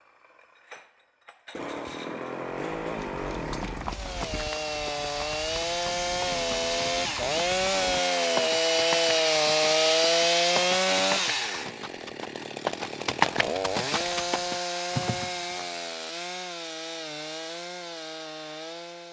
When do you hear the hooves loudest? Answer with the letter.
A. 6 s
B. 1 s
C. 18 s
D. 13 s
D.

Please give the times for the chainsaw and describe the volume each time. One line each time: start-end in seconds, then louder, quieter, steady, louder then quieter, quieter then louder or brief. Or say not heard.
0.0-19.0 louder then quieter.